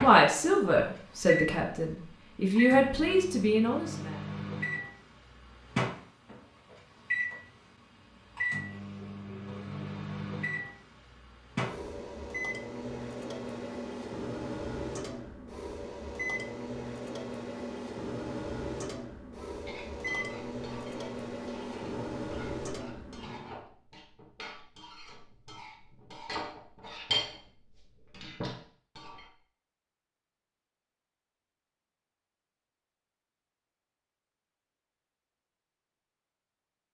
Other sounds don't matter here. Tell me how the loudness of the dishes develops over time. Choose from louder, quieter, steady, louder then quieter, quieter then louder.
louder.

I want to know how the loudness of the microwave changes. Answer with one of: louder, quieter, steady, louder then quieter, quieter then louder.
steady.